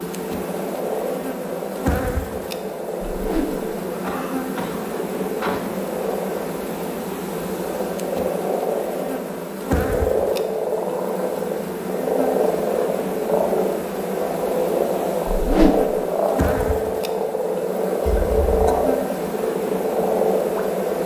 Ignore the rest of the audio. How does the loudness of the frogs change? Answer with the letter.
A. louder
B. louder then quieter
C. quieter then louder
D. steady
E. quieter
A.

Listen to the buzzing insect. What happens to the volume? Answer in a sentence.
The loudness of the buzzing insect stays about the same.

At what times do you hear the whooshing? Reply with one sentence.
The whooshing can be heard from 3.1 to 3.5 s and from 15.2 to 15.8 s.